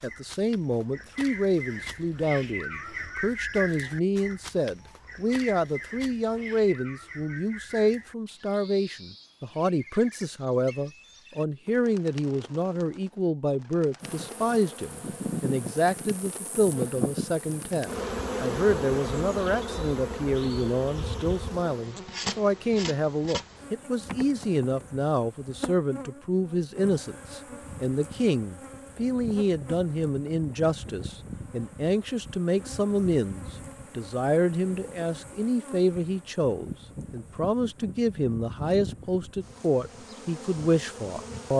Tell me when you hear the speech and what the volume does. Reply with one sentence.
You can hear the speech from 0.0 to 41.5 s, at a steady volume.